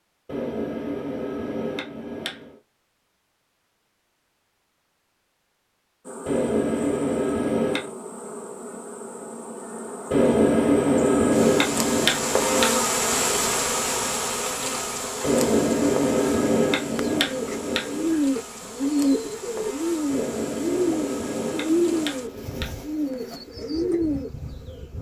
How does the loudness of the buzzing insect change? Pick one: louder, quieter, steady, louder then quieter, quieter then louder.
louder then quieter.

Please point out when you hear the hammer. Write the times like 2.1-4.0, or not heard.
0.2-2.5, 6.2-7.9, 10.1-12.8, 15.2-18.1, 20.1-22.9.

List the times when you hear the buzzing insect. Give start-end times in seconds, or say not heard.
6.0-24.9.